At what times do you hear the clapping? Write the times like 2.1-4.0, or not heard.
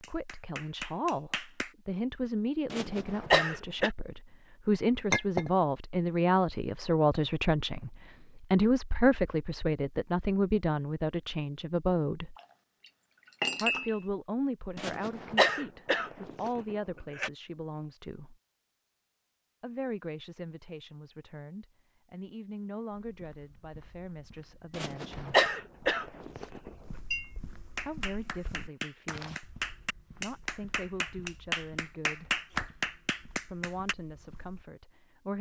0.0-1.7, 27.8-34.0.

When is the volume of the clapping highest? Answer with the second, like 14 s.
32 s.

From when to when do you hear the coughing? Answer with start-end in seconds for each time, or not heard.
2.7-3.9, 14.8-17.3, 24.7-26.7.